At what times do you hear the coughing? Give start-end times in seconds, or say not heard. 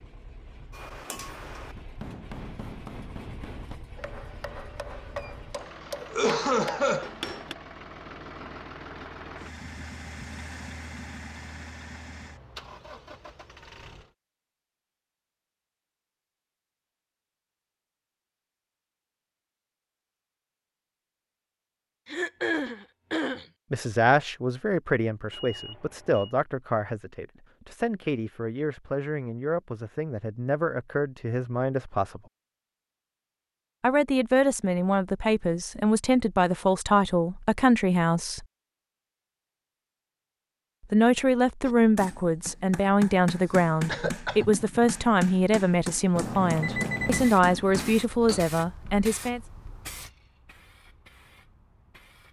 6.0-7.1, 22.1-23.4, 43.9-44.5.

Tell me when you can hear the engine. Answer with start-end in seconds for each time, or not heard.
0.0-14.2.